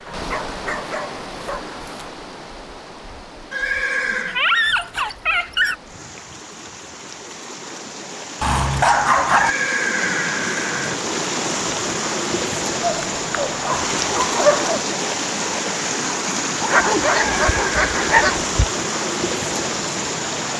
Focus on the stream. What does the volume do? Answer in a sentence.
The volume of the stream goes up.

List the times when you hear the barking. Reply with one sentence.
The barking can be heard from 0.1 to 2.1 s, from 4.2 to 5.8 s, from 8.4 to 9.5 s, from 12.8 to 14.8 s and from 16.6 to 18.6 s.